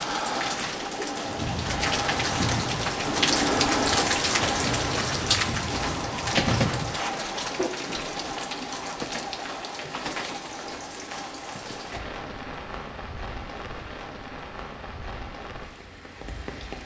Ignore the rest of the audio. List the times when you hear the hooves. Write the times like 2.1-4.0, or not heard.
1.2-7.0.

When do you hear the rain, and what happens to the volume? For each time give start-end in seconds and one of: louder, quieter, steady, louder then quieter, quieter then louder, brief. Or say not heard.
0.0-16.8 quieter.